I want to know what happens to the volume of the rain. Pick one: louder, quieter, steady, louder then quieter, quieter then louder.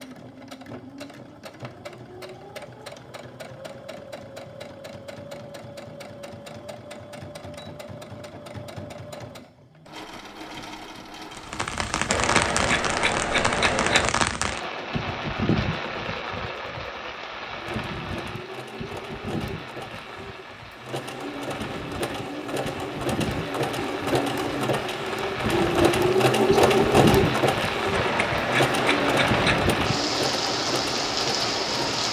quieter then louder.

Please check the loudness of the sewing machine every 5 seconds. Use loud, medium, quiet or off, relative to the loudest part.
quiet, quiet, quiet, quiet, medium, loud, medium.